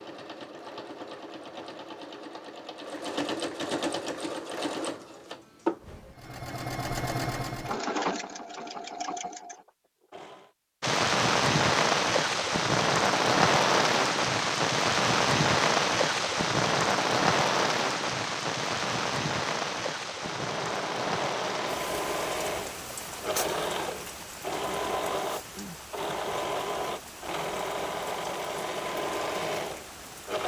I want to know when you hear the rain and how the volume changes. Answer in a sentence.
You can hear the rain from 10.8 to 30.4 s, getting quieter.